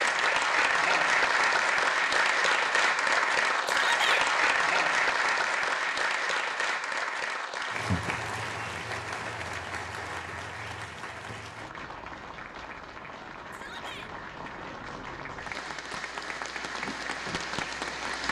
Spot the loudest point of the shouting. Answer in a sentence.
The loudest moment of the shouting is at 4 seconds.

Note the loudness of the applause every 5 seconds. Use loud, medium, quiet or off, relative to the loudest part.
loud, medium, quiet, medium.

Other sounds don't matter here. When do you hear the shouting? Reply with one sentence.
The shouting can be heard from 3.6 to 4.2 s and from 13.5 to 14.1 s.